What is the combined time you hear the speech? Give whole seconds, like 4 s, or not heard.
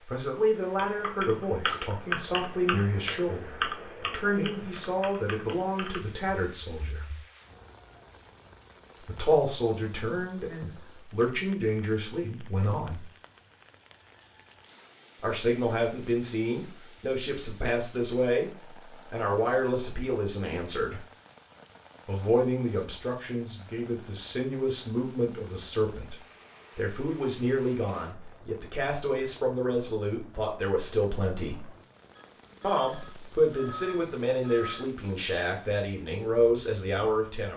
31 s.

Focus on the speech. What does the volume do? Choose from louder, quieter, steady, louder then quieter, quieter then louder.
steady.